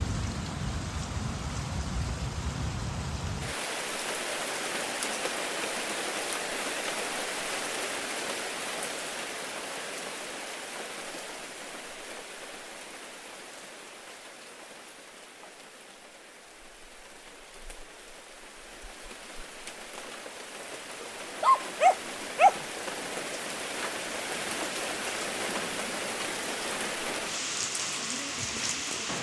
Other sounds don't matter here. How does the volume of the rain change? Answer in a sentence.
The loudness of the rain goes down, then up.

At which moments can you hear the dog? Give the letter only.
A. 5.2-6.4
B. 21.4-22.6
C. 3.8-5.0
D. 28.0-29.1
B.